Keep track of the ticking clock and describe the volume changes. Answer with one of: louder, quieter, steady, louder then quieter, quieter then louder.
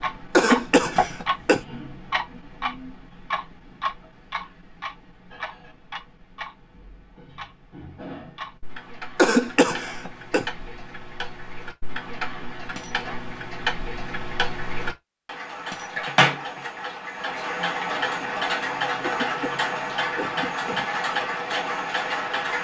quieter then louder.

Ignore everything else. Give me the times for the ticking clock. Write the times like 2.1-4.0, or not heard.
0.0-22.5.